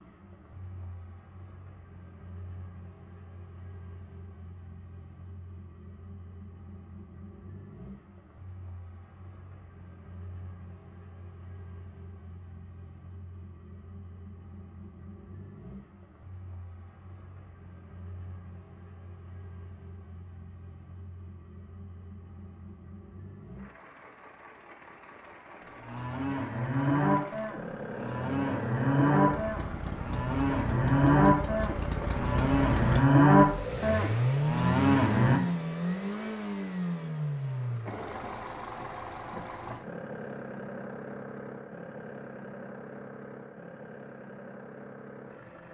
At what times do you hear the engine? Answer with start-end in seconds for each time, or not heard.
0.0-45.7.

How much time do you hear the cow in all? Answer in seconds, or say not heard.
10 s.